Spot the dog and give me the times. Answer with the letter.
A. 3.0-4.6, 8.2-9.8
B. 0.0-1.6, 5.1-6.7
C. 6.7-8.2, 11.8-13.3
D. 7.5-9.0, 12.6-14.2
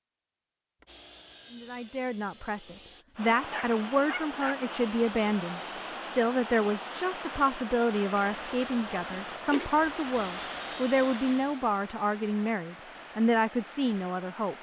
A.